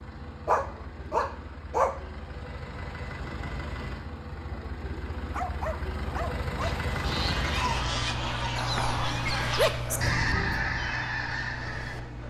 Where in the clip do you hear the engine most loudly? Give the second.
7 s.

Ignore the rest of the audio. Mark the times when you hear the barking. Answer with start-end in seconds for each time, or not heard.
0.5-2.0, 5.3-6.7, 8.6-10.1.